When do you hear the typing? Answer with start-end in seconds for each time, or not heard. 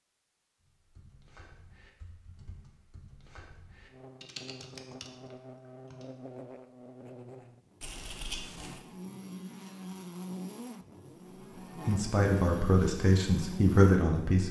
0.6-6.0.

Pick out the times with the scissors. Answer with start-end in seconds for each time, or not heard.
7.8-8.8.